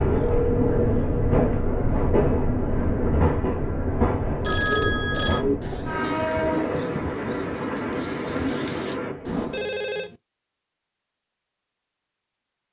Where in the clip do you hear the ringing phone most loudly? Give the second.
5 s.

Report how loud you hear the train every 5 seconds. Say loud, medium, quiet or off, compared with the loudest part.
loud, loud, off.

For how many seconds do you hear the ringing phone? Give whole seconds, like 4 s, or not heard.
4 s.